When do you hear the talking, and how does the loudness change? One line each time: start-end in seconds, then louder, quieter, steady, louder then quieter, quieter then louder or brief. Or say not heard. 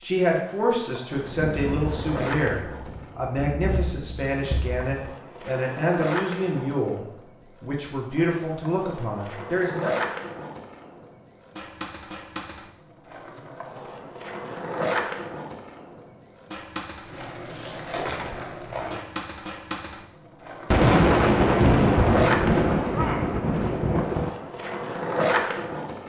0.0-9.9 steady.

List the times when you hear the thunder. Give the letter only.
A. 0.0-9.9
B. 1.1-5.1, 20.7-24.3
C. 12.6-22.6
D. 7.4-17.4
B.